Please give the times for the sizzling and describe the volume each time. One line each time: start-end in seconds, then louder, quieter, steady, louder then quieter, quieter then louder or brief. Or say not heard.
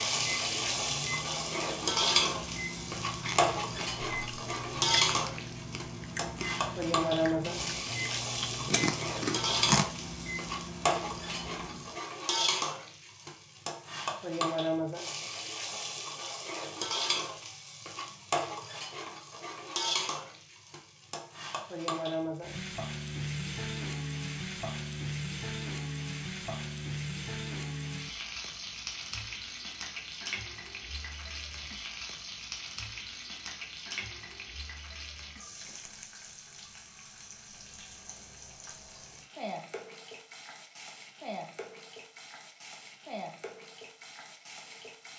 0.0-45.1 quieter.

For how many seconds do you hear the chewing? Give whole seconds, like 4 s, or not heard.
7 s.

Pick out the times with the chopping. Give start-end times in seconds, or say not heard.
not heard.